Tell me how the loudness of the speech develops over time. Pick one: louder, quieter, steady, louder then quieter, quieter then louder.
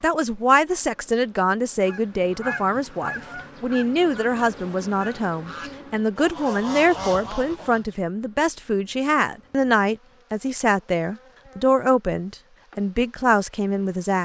steady.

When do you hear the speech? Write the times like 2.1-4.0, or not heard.
0.0-14.1.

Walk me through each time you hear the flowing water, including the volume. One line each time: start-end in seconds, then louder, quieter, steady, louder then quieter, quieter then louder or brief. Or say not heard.
not heard.